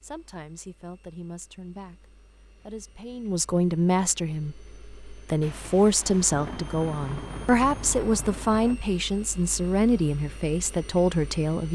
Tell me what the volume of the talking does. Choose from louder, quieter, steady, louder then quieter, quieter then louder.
louder.